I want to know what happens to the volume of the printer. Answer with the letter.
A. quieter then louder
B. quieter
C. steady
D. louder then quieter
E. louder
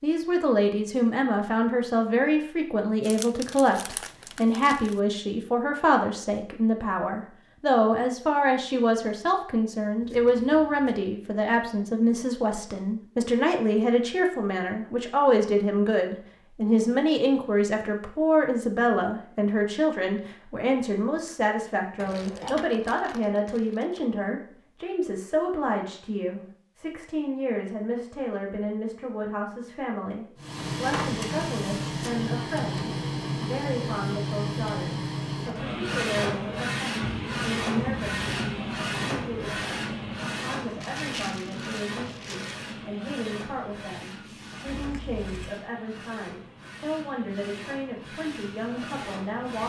B.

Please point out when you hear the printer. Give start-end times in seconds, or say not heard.
30.4-49.6.